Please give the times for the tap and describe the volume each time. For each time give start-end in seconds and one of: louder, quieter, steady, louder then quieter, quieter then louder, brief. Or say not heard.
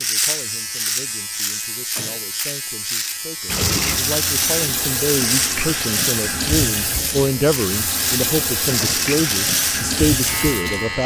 3.5-11.0 steady.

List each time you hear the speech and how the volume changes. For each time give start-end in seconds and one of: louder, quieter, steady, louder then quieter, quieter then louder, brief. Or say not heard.
0.0-11.0 louder.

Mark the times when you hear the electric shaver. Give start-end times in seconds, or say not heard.
0.0-11.0.